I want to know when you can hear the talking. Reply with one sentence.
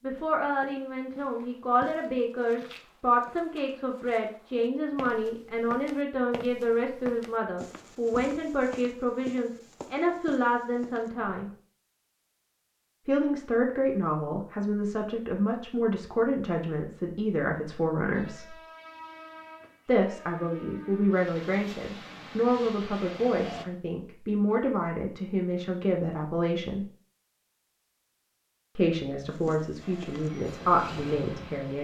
The talking can be heard from 0.0 to 11.5 s, from 13.1 to 18.6 s, from 19.9 to 26.9 s and from 28.8 to 31.7 s.